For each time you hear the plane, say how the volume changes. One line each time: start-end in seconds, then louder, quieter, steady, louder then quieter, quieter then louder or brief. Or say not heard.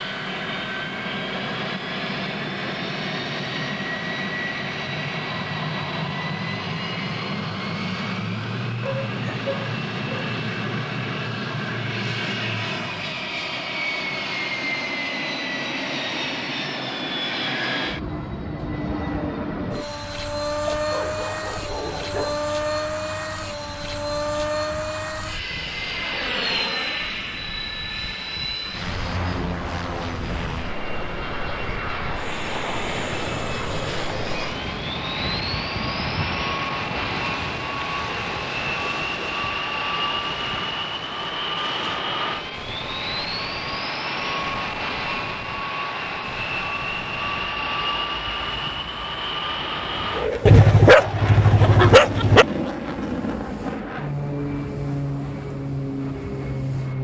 0.0-56.9 steady.